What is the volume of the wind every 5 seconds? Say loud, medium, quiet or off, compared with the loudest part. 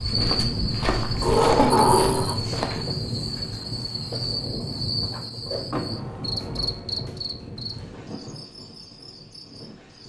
loud, medium.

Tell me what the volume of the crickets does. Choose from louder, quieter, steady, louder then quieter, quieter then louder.
quieter.